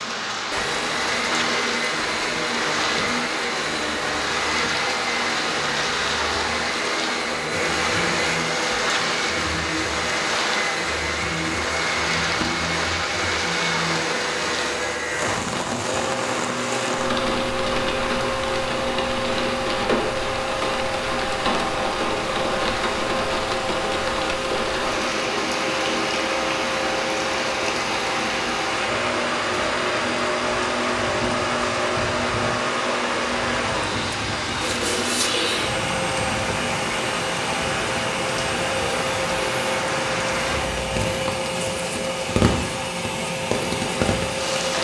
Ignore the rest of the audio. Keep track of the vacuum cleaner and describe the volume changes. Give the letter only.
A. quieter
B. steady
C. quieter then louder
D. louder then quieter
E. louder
B.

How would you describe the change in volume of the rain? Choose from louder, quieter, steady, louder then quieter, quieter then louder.
steady.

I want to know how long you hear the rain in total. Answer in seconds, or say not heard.
45 s.